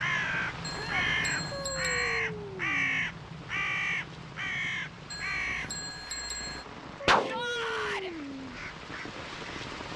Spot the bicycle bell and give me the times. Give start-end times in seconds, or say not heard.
0.6-2.2, 5.1-6.7.